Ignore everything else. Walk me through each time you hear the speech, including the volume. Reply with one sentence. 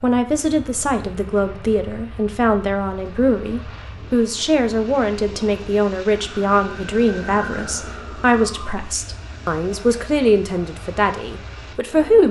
You can hear the speech from 0.0 to 12.2 s, at a steady volume.